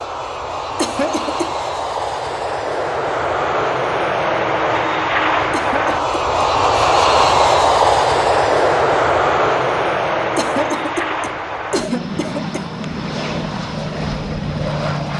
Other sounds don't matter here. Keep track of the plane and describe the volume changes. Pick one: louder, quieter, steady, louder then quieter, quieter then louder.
louder then quieter.